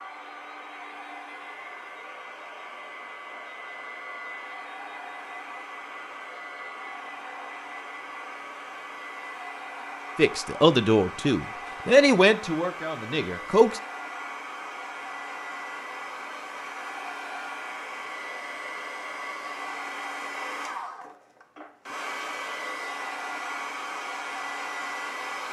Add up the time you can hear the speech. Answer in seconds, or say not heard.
4 s.